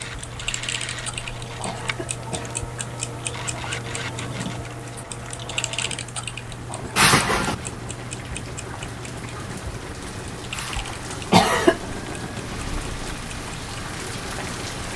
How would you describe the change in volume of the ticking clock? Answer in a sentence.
The volume of the ticking clock goes down.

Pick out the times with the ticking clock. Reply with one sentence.
You can hear the ticking clock from 0.0 to 14.7 s.